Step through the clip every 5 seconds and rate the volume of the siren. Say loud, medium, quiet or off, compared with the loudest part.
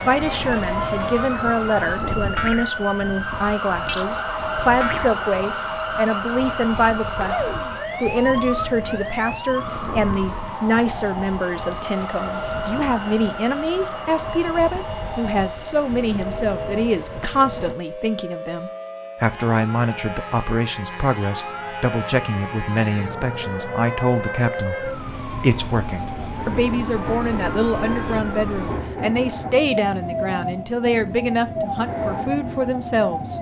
loud, loud, medium, medium, loud, loud, loud.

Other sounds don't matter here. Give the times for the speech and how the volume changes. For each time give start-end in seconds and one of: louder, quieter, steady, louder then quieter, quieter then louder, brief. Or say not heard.
0.1-33.3 steady.